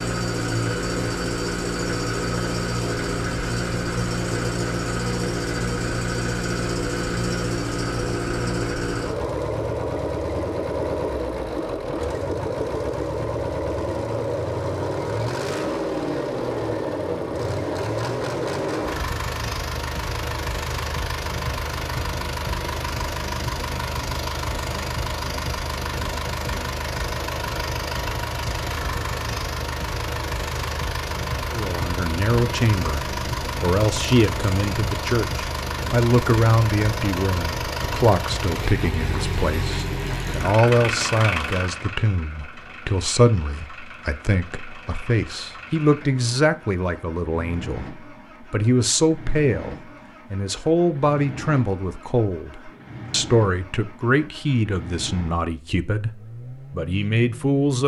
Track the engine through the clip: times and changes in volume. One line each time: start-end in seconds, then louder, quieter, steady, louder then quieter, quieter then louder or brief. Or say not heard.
0.0-57.6 quieter.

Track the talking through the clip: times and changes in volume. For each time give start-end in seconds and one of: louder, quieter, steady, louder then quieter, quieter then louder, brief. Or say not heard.
31.5-57.8 steady.